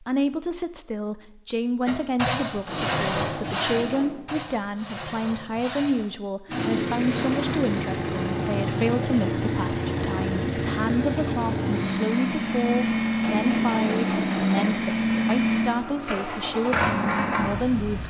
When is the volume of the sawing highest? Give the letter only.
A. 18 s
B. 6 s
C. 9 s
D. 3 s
D.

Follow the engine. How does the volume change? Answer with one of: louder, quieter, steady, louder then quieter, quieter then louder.
steady.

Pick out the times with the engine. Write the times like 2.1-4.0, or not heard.
6.5-18.0.